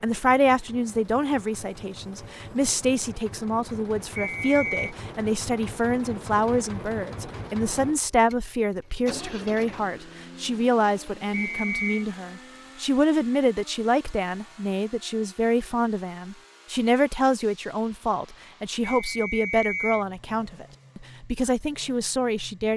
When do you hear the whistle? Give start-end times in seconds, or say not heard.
4.2-4.9, 11.3-12.1, 18.8-20.1.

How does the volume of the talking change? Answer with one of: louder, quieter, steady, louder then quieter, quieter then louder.
steady.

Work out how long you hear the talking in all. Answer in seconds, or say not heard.
23 s.